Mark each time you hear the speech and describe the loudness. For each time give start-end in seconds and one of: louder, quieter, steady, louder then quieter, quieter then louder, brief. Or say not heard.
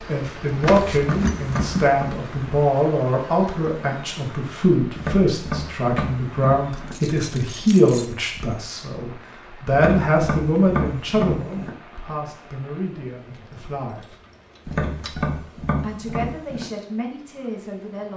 0.0-14.2 quieter
15.8-18.1 brief.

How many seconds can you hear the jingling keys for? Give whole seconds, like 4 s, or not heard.
5 s.